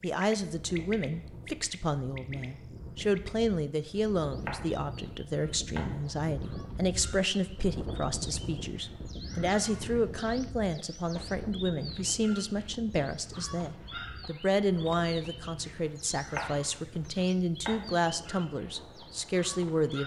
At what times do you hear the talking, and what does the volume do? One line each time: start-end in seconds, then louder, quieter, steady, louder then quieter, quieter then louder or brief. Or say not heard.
0.0-20.0 steady.